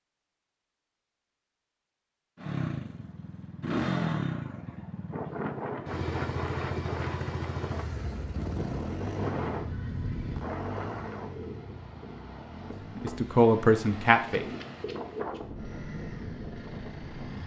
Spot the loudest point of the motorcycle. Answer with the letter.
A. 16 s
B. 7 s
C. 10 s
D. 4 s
D.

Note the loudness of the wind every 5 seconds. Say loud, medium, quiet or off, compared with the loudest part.
off, loud, loud, loud.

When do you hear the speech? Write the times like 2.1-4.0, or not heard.
12.9-14.4.